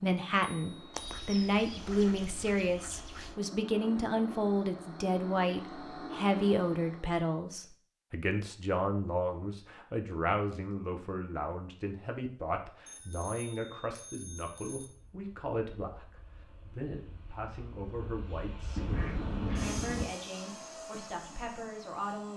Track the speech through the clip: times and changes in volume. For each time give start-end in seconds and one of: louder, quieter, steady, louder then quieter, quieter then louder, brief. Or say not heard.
0.0-22.3 quieter.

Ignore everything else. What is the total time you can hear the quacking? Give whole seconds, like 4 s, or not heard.
4 s.